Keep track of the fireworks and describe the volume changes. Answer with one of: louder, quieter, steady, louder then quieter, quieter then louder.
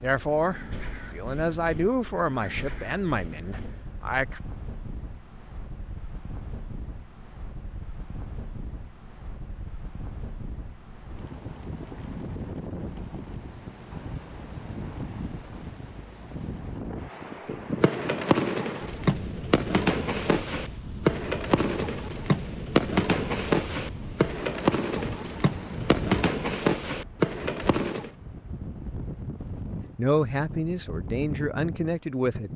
steady.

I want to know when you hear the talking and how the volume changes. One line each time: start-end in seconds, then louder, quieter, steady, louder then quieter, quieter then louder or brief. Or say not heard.
0.0-4.4 quieter
29.9-32.5 brief.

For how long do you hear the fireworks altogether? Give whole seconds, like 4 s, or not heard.
10 s.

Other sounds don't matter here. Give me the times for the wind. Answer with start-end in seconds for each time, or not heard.
0.0-32.5.